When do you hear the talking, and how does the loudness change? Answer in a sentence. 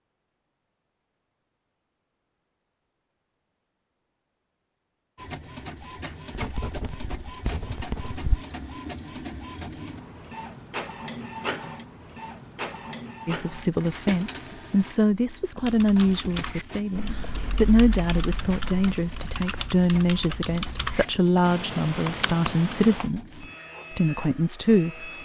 The talking can be heard from 13.2 to 25.2 s, at a steady volume.